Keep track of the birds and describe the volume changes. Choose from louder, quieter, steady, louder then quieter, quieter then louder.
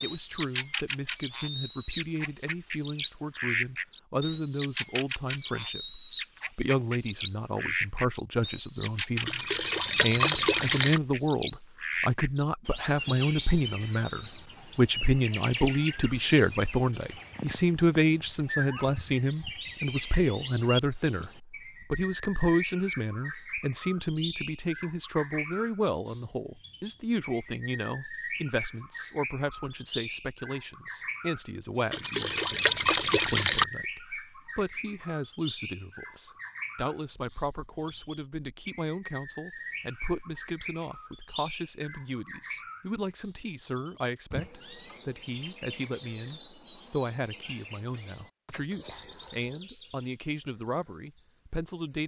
quieter.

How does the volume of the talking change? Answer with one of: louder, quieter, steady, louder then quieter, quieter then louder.
louder then quieter.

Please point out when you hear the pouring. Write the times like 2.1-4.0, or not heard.
9.2-11.0, 31.9-33.6.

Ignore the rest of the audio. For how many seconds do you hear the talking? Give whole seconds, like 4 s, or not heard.
52 s.